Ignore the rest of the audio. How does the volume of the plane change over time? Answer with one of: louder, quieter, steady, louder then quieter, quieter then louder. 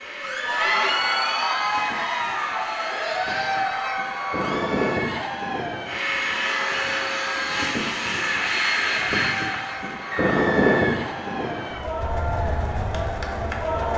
louder then quieter.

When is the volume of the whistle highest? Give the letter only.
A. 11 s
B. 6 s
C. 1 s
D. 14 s
A.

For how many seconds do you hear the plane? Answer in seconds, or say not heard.
14 s.